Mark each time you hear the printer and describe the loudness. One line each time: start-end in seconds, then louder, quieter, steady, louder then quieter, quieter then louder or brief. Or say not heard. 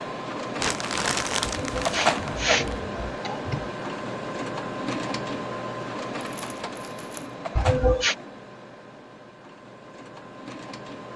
0.0-11.1 quieter.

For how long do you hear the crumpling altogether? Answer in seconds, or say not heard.
3 s.